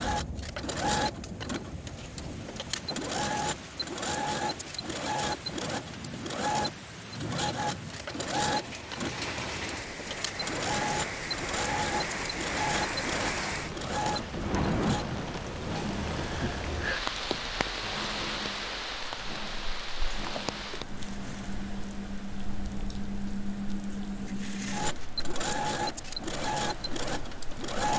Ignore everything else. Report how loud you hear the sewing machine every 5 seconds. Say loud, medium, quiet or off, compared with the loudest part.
loud, loud, loud, medium, medium, loud.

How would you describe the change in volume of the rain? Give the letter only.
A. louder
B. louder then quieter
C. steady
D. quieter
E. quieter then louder
B.